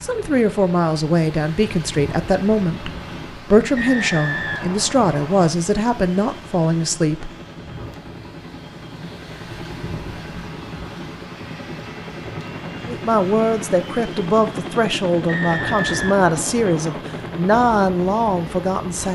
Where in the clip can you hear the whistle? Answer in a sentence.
You can hear the whistle from 3.8 to 5.5 s and from 15.2 to 17.1 s.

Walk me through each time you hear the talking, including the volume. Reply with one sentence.
The talking can be heard from 0.0 to 7.3 s, at a steady volume; and from 12.8 to 19.1 s, at a steady volume.